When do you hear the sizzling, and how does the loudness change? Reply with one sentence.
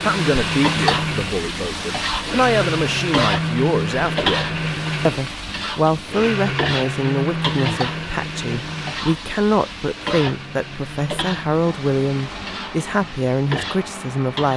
You can hear the sizzling from 0.0 to 14.5 s, getting quieter.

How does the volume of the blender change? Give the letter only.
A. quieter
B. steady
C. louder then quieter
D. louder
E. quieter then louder
A.